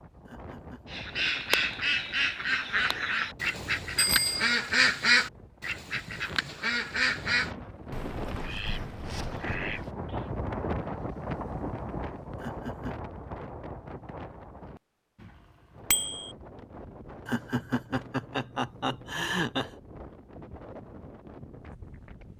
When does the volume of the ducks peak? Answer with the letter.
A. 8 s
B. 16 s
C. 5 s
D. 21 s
C.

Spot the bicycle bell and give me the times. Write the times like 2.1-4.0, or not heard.
4.0-4.4, 15.9-16.3.